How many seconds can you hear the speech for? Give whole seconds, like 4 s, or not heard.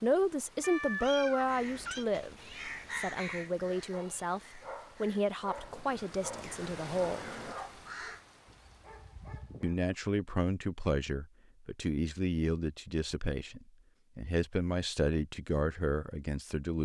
14 s.